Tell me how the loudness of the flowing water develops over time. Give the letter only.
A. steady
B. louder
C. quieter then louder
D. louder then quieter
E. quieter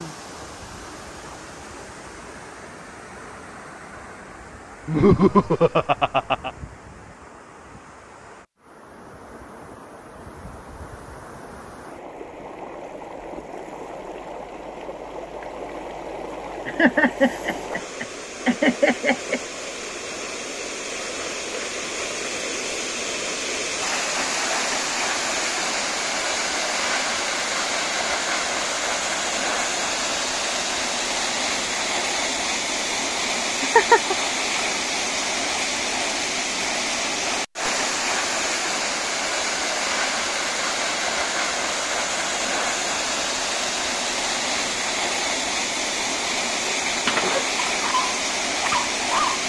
B.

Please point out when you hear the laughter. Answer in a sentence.
The laughter can be heard from 4.8 to 6.5 s, from 16.6 to 19.4 s and from 33.6 to 34.1 s.